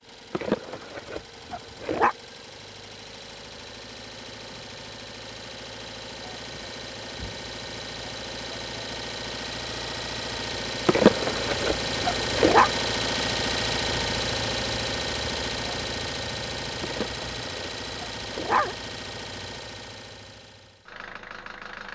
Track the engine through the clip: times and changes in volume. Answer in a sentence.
The engine can be heard from 0.0 to 21.9 s, getting louder then quieter.